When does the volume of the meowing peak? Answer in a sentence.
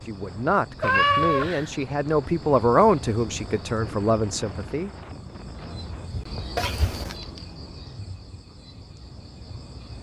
The volume of the meowing peaks at 1 second.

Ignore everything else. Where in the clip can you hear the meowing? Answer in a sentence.
The meowing can be heard from 0.8 to 1.7 s and from 6.5 to 7.2 s.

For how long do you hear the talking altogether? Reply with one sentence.
The talking can be heard for 5 seconds in total.